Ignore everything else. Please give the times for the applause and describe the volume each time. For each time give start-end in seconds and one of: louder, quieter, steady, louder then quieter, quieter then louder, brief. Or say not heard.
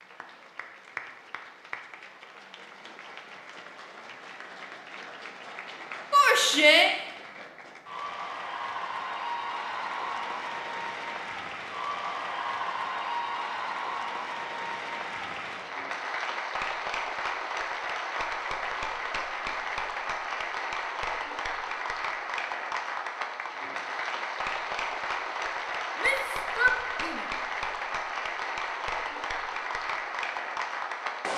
0.0-31.3 louder.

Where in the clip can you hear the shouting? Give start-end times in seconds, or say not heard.
6.1-7.0, 25.9-27.2.